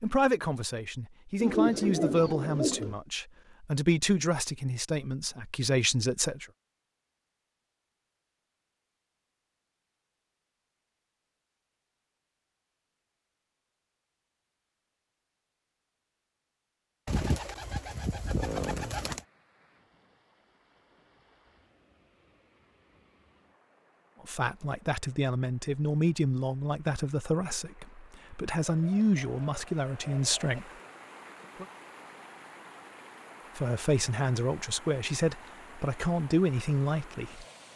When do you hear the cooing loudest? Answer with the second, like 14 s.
2 s.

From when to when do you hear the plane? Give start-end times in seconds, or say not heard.
not heard.